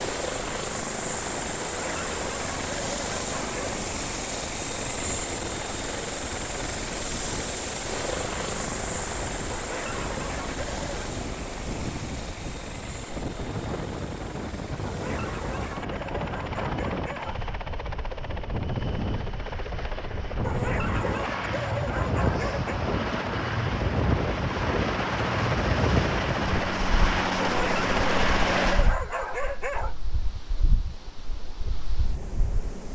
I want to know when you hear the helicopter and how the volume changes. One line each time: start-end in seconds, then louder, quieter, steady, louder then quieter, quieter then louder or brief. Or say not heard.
0.0-28.9 quieter then louder.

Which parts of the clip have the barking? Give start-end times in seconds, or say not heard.
1.6-3.8, 9.5-11.2, 14.8-17.6, 20.4-22.8, 27.4-29.9.